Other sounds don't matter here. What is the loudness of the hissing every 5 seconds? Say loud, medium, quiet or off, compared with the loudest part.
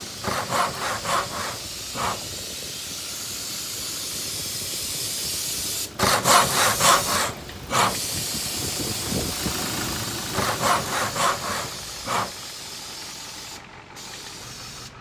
loud, loud, medium.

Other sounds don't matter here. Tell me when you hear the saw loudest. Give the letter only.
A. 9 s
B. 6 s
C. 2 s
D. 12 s
B.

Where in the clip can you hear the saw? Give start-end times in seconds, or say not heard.
0.2-2.2, 6.0-8.0, 10.3-12.3.